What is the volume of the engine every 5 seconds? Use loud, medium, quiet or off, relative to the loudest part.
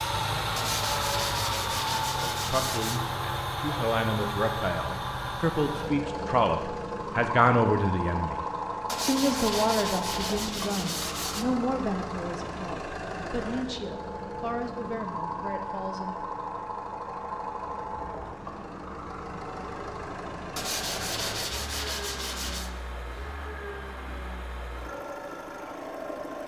loud, loud, medium, medium, medium, medium.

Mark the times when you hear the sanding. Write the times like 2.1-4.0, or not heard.
0.6-3.0, 8.8-11.4, 20.6-22.7.